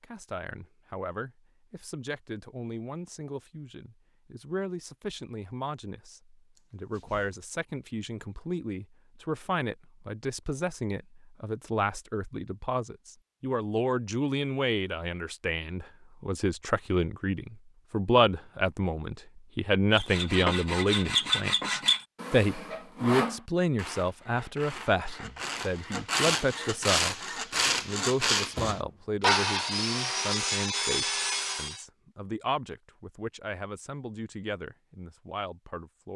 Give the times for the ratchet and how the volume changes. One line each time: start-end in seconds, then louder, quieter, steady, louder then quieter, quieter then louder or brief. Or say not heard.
not heard.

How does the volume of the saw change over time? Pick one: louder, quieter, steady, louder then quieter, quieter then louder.
quieter then louder.